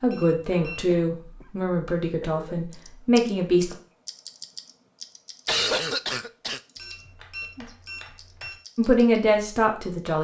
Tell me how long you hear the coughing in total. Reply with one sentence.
You can hear the coughing for 3 seconds altogether.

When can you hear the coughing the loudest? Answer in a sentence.
The loudest moment of the coughing is at 6 seconds.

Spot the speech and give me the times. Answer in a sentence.
The speech can be heard from 0.0 to 3.8 s and from 8.8 to 10.2 s.